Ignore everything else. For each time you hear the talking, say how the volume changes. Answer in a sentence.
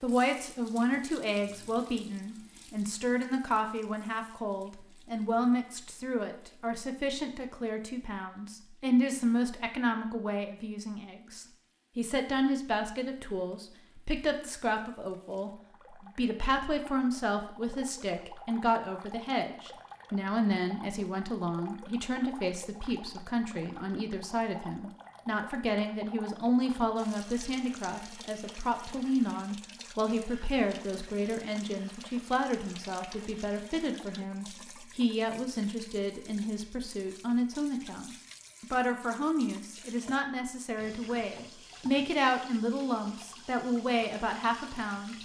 The talking can be heard from 0.0 to 45.1 s, at a steady volume.